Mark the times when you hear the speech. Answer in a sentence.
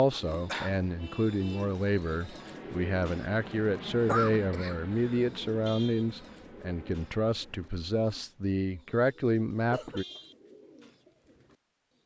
The speech can be heard from 0.0 to 10.1 s.